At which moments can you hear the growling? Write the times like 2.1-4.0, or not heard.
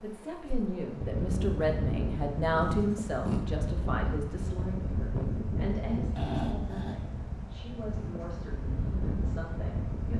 2.6-3.5, 6.2-7.0.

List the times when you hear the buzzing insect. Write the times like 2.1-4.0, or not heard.
not heard.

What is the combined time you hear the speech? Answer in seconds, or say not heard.
10 s.